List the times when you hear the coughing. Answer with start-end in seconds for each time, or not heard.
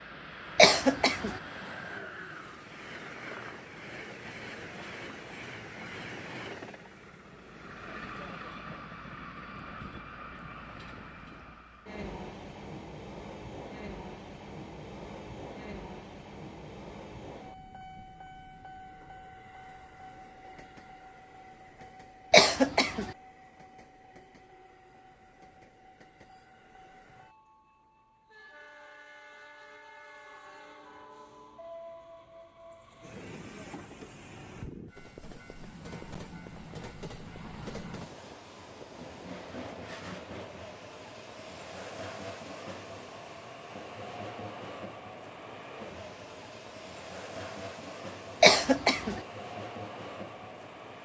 0.6-1.4, 22.3-23.1, 48.4-49.2.